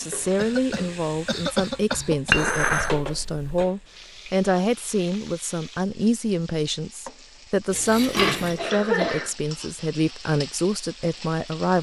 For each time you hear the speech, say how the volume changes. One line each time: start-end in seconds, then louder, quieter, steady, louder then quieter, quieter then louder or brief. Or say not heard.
0.0-11.7 steady.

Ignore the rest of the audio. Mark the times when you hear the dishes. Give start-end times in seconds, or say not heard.
2.3-3.5, 7.7-8.7.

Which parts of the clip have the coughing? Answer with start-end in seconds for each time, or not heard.
0.3-3.0, 8.6-9.3.